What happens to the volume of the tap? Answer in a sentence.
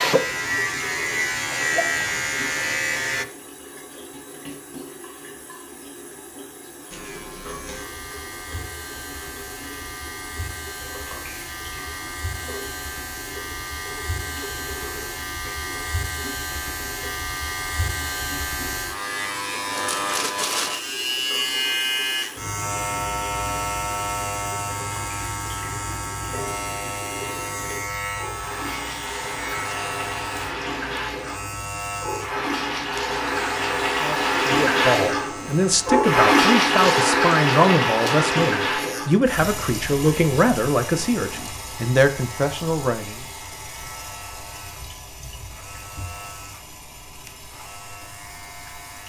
The loudness of the tap goes up, then down.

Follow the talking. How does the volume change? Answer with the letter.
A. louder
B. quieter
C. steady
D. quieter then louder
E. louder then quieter
C.